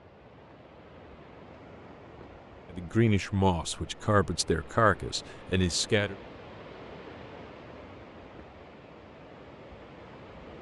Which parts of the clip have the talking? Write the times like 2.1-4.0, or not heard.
2.7-6.2.